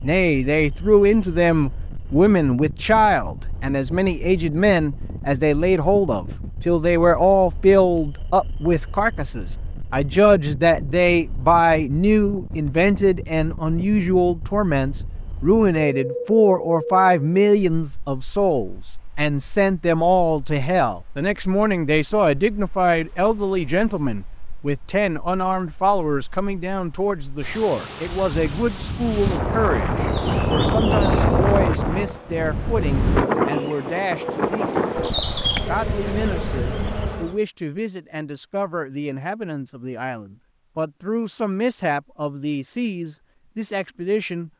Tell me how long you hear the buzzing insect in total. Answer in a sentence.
The buzzing insect can be heard for 7 seconds in total.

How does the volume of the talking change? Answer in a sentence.
The loudness of the talking goes down.